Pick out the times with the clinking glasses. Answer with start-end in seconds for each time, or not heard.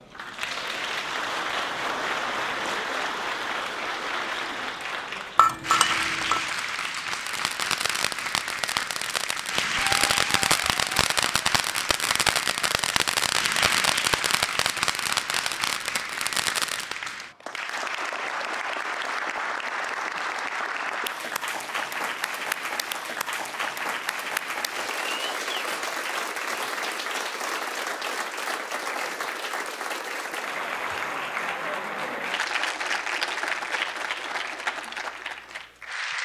5.3-6.5.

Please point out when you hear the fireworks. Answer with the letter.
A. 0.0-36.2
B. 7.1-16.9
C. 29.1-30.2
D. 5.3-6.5
B.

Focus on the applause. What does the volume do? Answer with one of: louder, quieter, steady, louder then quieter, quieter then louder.
steady.